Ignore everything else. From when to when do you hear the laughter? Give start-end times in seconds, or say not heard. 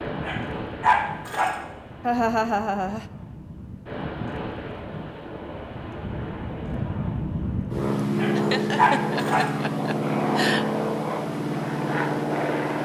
2.0-3.0, 8.3-10.7.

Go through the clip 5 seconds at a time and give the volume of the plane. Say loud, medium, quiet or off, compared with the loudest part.
medium, loud, loud.